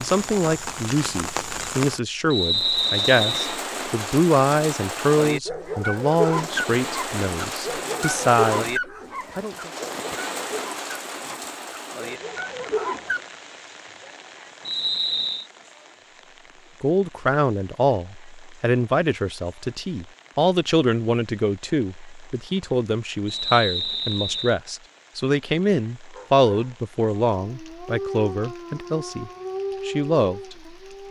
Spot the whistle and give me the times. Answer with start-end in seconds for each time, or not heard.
2.3-3.6, 14.7-15.5, 23.2-24.6.